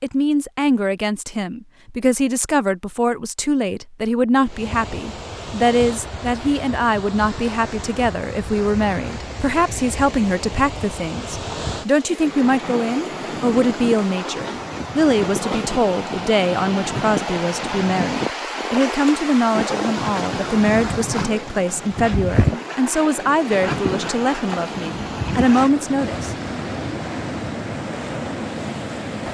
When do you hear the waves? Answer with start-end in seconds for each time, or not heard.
4.4-29.3.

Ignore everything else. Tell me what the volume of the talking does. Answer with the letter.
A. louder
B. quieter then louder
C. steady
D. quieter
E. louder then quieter
C.